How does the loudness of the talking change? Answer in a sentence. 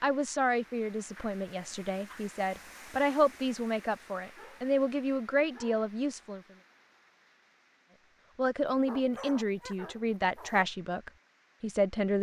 The loudness of the talking stays about the same.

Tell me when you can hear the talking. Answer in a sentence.
You can hear the talking from 0.0 to 6.4 s and from 8.3 to 12.1 s.